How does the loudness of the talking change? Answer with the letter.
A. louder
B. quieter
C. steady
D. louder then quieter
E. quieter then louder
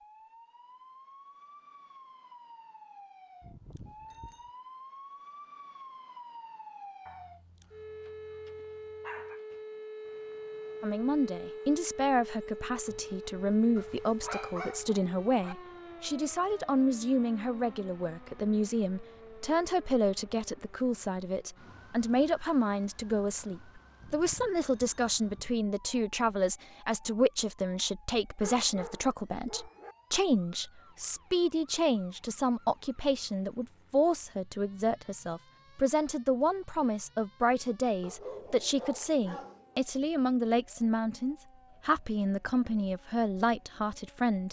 C.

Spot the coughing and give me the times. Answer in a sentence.
The coughing can't be heard in this clip.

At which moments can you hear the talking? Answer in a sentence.
You can hear the talking from 10.8 to 44.4 s.